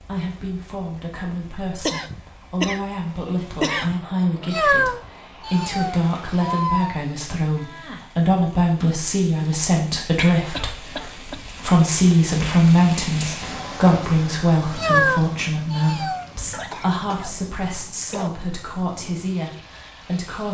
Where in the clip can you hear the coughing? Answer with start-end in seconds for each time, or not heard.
1.9-4.0, 10.2-11.4, 16.5-18.3.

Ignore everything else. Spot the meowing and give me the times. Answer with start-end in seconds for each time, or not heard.
4.4-7.0, 14.7-16.2.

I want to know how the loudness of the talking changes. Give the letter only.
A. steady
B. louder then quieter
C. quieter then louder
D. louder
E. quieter
B.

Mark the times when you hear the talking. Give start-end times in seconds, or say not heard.
0.0-20.5.